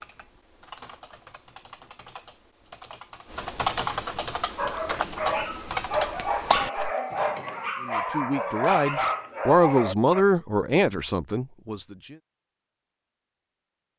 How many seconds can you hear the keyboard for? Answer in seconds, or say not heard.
7 s.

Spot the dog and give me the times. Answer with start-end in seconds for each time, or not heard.
4.5-10.2.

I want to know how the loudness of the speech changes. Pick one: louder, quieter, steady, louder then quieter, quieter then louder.
louder then quieter.